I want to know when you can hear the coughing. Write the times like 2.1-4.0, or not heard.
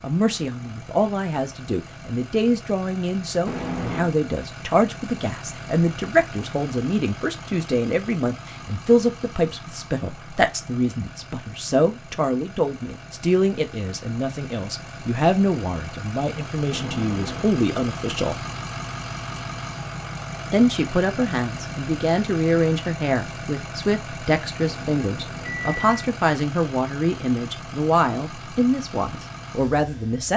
not heard.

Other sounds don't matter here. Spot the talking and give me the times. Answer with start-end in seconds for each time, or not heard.
0.0-18.4, 20.5-30.3.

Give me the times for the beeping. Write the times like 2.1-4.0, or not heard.
3.5-4.2, 16.7-17.4, 24.6-25.9.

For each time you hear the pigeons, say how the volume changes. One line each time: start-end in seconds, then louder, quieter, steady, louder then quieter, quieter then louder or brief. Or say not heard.
not heard.